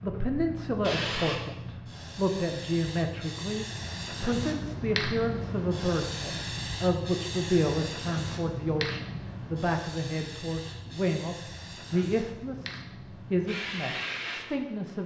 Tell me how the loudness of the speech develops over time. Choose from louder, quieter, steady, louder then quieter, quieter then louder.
steady.